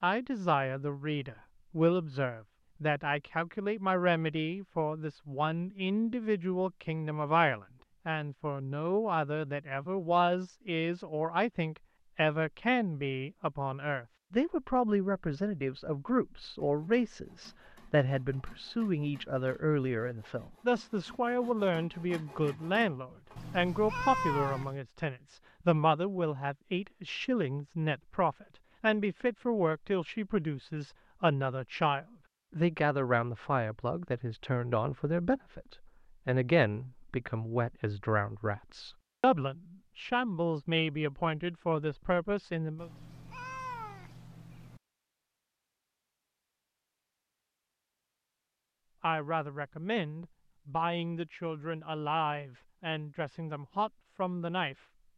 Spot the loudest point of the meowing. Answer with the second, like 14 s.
24 s.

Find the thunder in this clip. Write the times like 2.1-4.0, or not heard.
not heard.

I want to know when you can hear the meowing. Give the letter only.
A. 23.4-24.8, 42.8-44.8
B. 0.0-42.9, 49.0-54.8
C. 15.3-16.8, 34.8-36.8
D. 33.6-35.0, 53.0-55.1
A.